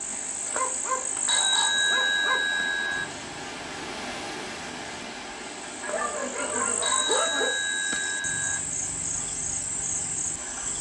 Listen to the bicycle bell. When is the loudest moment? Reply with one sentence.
The loudest moment of the bicycle bell is at 2 seconds.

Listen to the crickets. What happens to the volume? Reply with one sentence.
The volume of the crickets goes down, then up.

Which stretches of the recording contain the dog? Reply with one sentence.
The dog can be heard from 0.5 to 2.4 s and from 5.8 to 7.5 s.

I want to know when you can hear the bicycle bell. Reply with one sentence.
You can hear the bicycle bell from 1.2 to 3.0 s and from 6.8 to 8.6 s.